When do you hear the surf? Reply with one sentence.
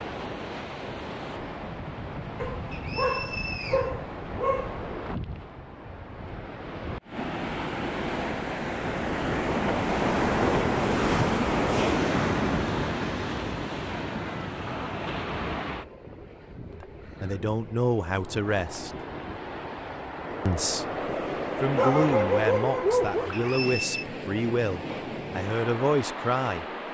You can hear the surf from 0.0 to 26.9 s.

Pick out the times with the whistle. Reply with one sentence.
The whistle can be heard from 2.7 to 3.9 s and from 23.3 to 24.1 s.